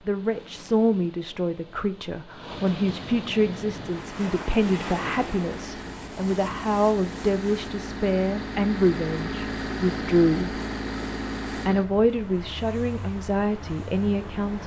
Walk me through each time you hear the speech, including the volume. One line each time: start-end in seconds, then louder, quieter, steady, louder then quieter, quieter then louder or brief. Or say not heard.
0.1-10.6 steady
11.7-14.6 brief.